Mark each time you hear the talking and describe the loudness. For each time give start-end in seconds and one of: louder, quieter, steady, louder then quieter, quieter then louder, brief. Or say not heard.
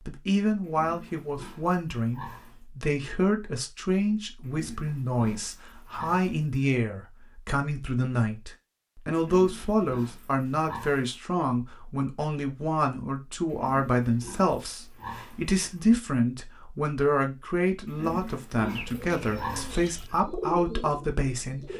0.1-21.7 steady.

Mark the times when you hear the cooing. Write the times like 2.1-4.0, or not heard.
18.6-21.7.